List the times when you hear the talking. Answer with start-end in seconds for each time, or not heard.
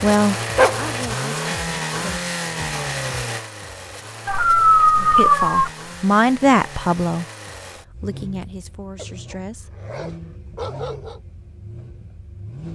0.0-2.3, 5.0-7.2, 8.0-9.8.